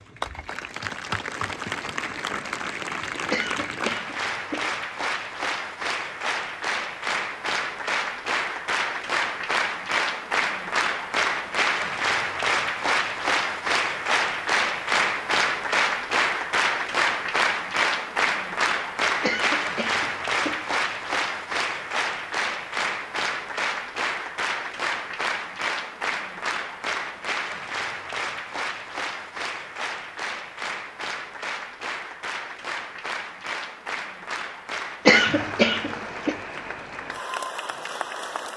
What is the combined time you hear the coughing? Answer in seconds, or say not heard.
4 s.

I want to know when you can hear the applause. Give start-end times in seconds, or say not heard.
0.0-38.5.